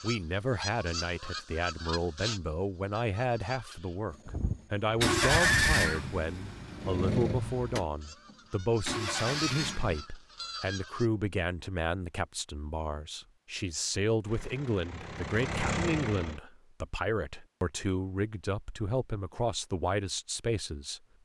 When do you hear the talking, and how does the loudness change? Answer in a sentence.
The talking can be heard from 0.0 to 21.0 s, at a steady volume.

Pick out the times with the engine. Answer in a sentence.
You can hear the engine from 4.4 to 10.1 s and from 14.2 to 16.4 s.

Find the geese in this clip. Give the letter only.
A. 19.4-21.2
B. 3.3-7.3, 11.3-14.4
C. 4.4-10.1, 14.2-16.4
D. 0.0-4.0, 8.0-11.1
D.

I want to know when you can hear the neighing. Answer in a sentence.
The neighing can be heard from 4.2 to 6.0 s.